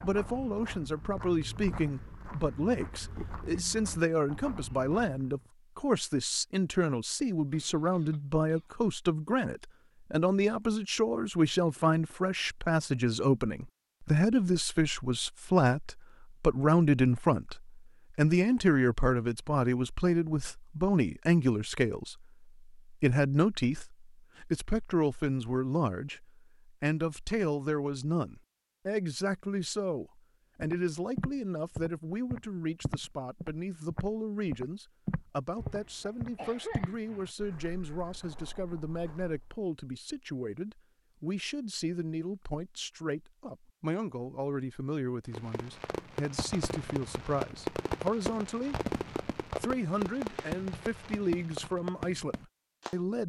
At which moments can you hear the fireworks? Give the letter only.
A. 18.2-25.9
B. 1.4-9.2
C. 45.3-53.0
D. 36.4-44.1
C.